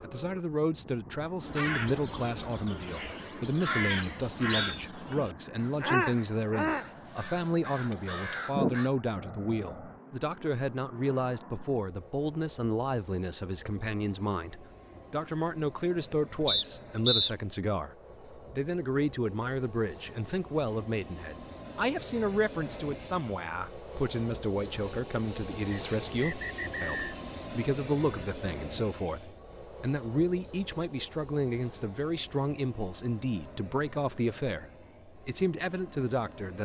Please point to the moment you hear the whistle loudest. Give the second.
17 s.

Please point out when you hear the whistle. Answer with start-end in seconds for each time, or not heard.
3.9-4.8, 16.4-17.3, 25.7-27.1.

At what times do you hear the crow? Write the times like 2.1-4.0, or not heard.
1.4-8.9.